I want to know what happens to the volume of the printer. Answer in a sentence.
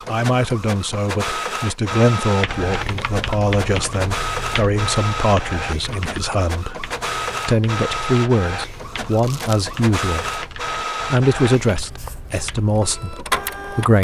The loudness of the printer stays about the same.